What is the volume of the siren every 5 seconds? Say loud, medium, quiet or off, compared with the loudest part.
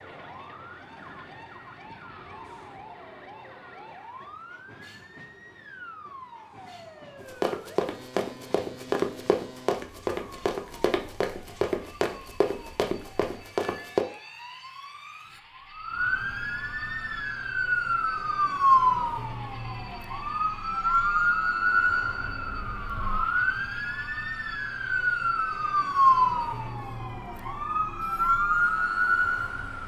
quiet, quiet, quiet, loud, loud, loud.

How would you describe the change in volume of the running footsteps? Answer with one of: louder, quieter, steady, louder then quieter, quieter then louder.
steady.